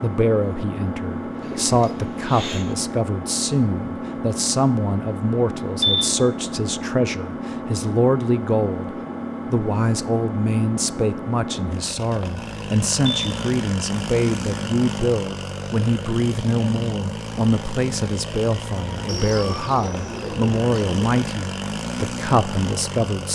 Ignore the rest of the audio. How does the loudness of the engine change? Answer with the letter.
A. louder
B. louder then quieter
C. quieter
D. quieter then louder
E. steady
E.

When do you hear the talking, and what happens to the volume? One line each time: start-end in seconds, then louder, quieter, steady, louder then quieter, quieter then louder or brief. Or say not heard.
0.0-8.9 steady
9.5-23.2 steady.